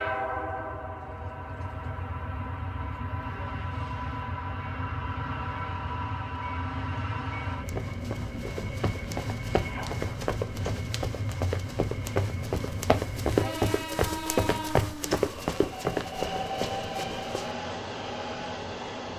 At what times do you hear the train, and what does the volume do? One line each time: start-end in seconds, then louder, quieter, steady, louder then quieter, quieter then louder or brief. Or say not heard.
0.0-19.1 steady.